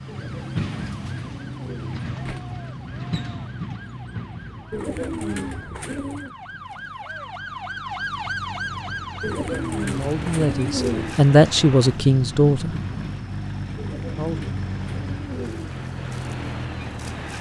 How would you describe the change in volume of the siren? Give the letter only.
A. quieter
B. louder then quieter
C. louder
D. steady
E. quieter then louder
C.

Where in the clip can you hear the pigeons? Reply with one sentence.
You can hear the pigeons from 0.1 to 2.5 s, from 4.7 to 6.3 s, from 9.2 to 11.2 s and from 13.8 to 15.8 s.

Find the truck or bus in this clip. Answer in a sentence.
You can hear the truck or bus from 0.0 to 17.3 s.